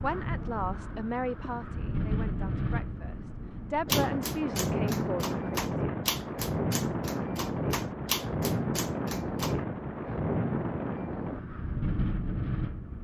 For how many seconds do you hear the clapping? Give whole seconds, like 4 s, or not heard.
6 s.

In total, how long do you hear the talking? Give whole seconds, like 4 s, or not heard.
6 s.